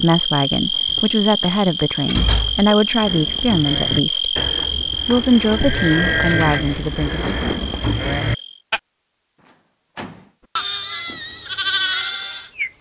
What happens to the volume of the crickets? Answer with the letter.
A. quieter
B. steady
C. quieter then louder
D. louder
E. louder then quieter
A.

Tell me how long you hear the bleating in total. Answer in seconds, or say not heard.
8 s.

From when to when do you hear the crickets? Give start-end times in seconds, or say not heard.
0.0-8.6.